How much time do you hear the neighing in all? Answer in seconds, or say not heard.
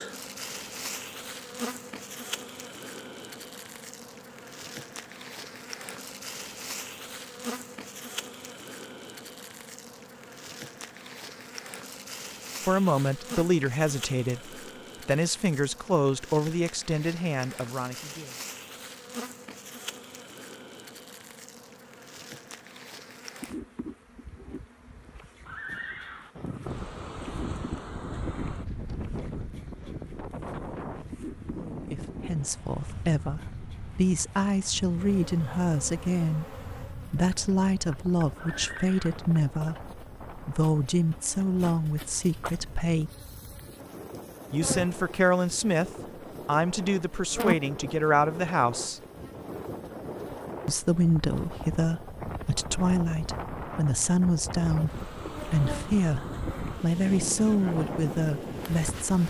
2 s.